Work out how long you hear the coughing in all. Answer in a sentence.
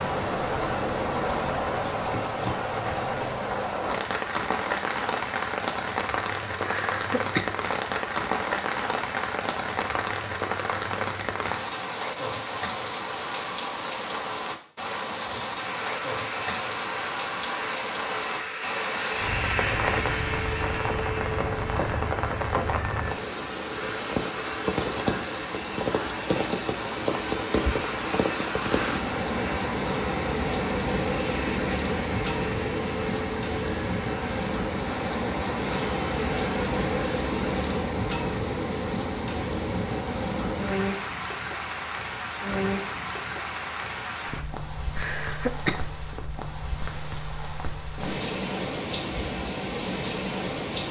The coughing can be heard for 2 seconds in total.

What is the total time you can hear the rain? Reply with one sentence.
You can hear the rain for 51 seconds altogether.